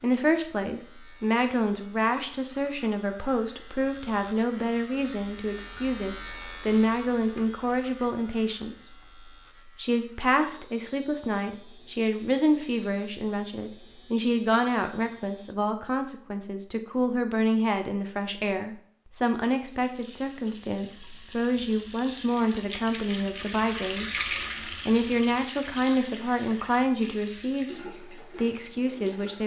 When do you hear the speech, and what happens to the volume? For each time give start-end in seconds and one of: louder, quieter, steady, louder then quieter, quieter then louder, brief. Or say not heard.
0.0-8.9 steady
9.8-29.4 steady.